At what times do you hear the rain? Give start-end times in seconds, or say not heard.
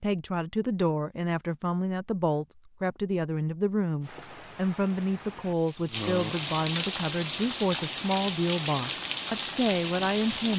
4.0-10.5.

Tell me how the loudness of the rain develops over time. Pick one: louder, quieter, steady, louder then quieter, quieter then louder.
louder.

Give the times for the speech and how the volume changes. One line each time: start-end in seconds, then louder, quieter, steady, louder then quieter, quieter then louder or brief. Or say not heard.
0.0-10.5 steady.